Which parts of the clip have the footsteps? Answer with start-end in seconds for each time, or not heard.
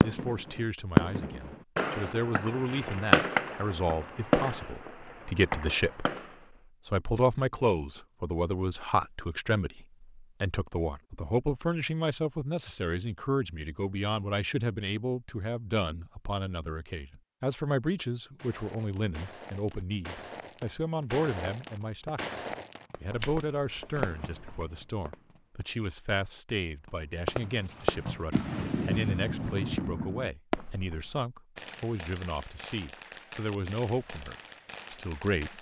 18.4-24.8.